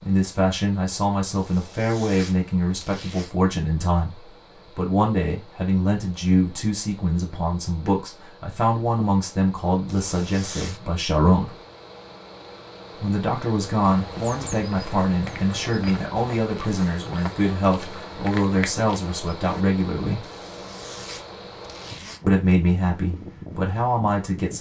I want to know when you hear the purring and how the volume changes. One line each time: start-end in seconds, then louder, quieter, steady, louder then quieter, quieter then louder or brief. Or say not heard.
not heard.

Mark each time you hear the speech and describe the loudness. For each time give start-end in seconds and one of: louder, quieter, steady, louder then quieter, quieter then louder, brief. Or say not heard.
0.0-11.6 steady
12.9-20.2 steady
22.2-24.5 brief.